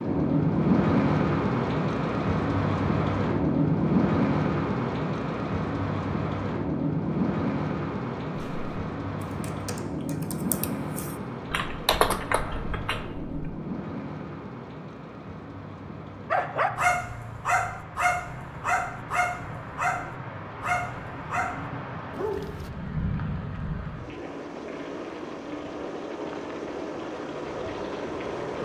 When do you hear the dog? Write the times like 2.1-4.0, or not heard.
16.3-22.7.